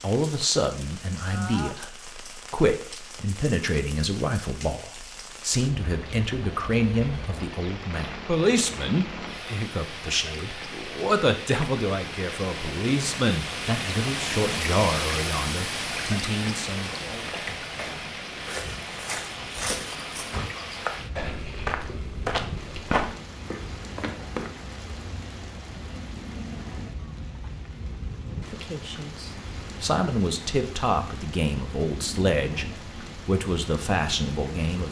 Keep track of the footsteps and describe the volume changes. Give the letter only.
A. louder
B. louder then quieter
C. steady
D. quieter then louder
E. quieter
A.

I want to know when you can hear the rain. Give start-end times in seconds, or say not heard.
0.0-34.8.